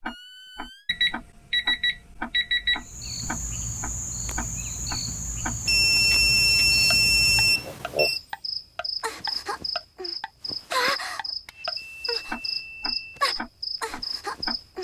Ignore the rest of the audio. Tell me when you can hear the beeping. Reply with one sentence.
The beeping can be heard from 0.8 to 3.1 s, from 5.7 to 8.2 s and from 11.4 to 13.2 s.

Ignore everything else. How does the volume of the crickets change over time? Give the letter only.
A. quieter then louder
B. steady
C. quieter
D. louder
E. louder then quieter
B.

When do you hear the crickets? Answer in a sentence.
You can hear the crickets from 2.8 to 14.7 s.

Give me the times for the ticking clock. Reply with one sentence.
The ticking clock can be heard from 0.0 to 14.6 s.